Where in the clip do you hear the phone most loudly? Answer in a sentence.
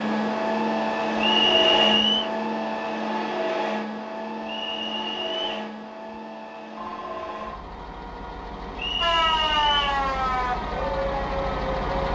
The volume of the phone peaks at 7 seconds.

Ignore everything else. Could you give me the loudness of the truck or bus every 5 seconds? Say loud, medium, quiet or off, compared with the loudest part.
loud, medium, medium.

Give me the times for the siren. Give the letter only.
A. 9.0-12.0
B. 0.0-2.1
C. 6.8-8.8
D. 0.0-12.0
A.